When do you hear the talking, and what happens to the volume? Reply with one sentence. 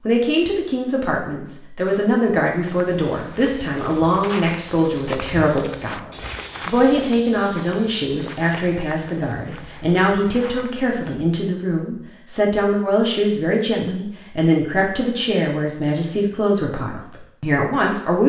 You can hear the talking from 0.1 to 18.2 s, at a steady volume.